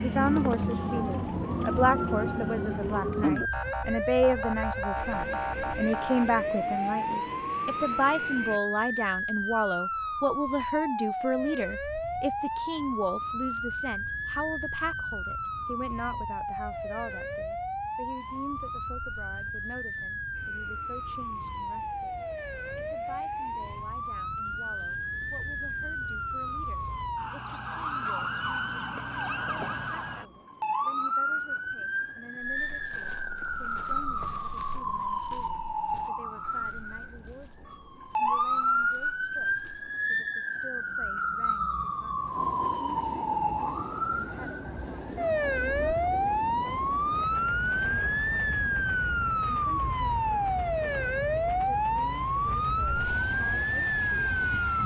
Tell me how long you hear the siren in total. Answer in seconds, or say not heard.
55 s.